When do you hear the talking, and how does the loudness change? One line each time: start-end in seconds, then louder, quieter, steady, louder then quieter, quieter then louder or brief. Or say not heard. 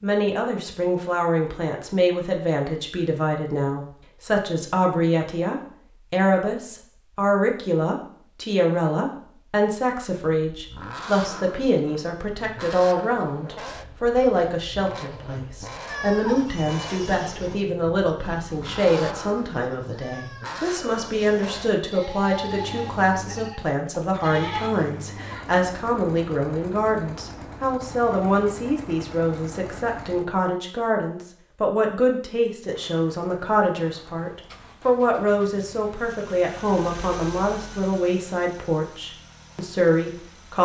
0.0-40.6 steady.